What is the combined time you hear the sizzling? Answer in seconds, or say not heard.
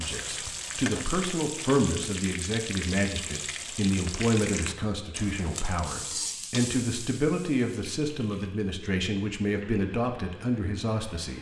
11 s.